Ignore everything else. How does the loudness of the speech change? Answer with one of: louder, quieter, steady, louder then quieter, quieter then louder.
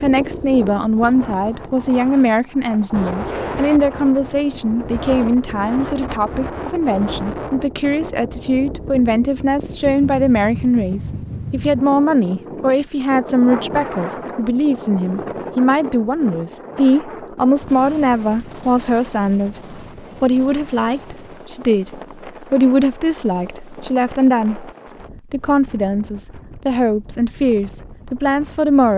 steady.